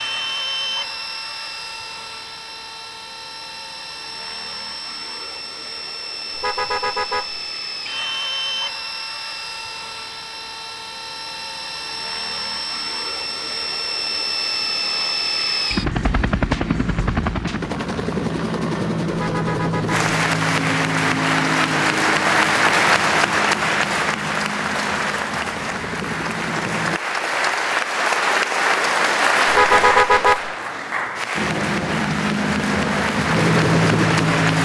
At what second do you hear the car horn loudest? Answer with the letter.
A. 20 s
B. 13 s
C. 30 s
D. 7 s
C.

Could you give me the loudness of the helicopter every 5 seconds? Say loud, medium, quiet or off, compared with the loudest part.
medium, medium, medium, loud, medium, medium, loud.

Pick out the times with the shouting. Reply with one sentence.
You can't hear the shouting here.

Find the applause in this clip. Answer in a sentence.
The applause can be heard from 19.9 to 34.6 s.